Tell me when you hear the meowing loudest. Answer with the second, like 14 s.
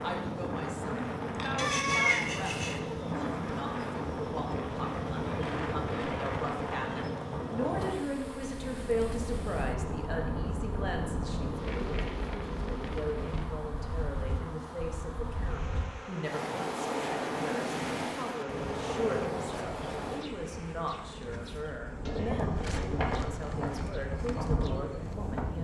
2 s.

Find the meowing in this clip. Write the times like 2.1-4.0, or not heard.
1.6-2.8, 22.1-23.3.